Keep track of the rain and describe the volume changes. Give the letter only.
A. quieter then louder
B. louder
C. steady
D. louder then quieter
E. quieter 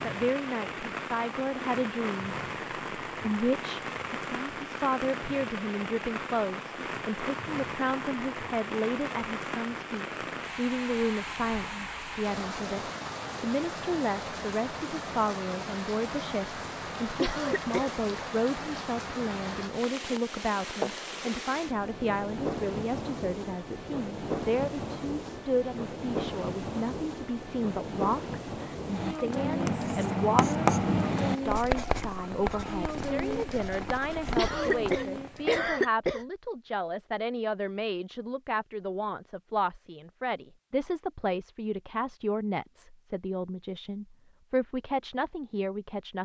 C.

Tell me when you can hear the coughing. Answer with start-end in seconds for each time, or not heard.
17.1-17.9, 34.4-36.2.